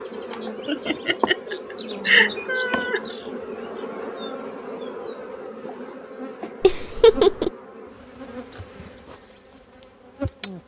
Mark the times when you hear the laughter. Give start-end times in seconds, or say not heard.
0.7-3.0, 6.6-7.5.